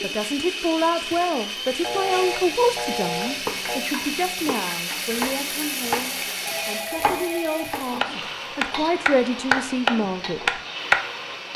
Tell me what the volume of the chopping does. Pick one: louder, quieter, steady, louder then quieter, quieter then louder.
louder.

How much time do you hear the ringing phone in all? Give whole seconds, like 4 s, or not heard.
3 s.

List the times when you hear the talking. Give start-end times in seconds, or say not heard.
0.0-10.6.